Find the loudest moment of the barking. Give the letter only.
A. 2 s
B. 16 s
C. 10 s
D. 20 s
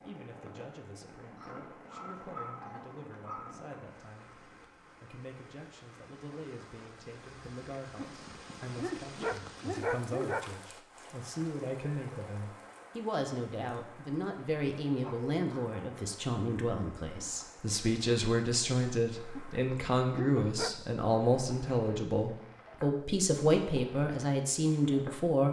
C.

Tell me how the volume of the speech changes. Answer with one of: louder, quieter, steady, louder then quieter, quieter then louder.
louder.